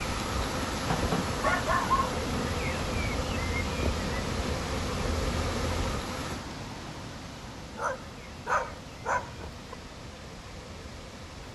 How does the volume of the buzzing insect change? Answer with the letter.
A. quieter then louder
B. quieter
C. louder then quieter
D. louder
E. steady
B.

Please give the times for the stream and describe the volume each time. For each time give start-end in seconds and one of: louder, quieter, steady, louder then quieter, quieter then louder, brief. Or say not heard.
0.0-11.4 quieter.